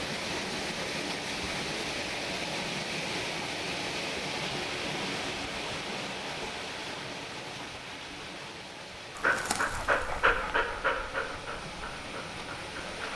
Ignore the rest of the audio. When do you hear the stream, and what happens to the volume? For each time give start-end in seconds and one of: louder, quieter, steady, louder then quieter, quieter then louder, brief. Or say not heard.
0.0-13.1 quieter.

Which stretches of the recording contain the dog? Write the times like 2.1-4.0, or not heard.
9.2-13.1.